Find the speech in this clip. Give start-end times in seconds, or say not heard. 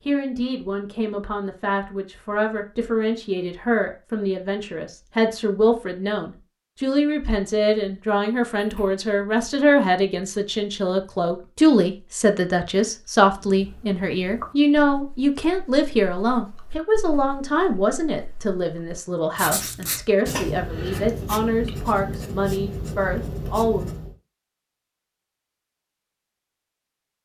0.0-23.9.